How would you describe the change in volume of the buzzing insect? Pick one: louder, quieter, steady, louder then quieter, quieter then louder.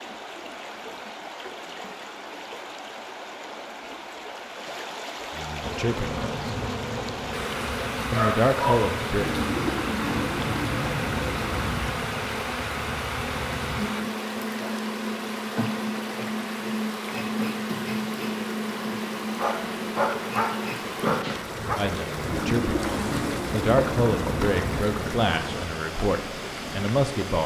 steady.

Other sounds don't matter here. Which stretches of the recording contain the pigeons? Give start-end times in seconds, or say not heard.
9.2-12.0, 22.2-24.9.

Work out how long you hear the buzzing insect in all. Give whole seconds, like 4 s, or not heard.
20 s.